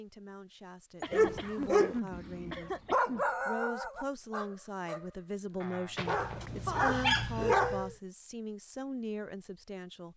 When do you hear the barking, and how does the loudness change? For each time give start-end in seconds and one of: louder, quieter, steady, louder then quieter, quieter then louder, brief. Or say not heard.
1.1-8.0 quieter then louder.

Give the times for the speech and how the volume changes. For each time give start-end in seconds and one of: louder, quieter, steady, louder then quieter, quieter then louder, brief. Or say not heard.
0.0-2.8 brief
3.5-10.1 steady.